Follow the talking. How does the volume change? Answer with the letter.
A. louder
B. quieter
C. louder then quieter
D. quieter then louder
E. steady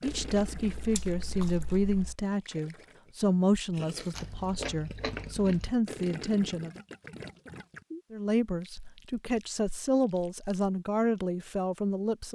E.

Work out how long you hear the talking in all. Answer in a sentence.
You can hear the talking for 11 seconds altogether.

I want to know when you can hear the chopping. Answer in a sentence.
The chopping can't be heard in this clip.